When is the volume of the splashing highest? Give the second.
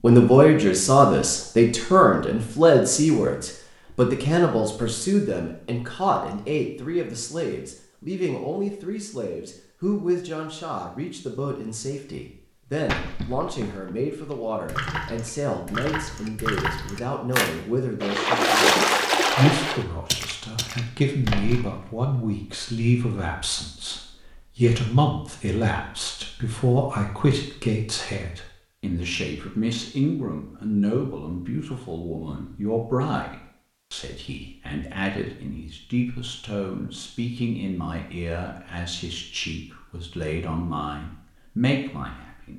19 s.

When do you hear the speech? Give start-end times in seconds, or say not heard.
0.0-42.5.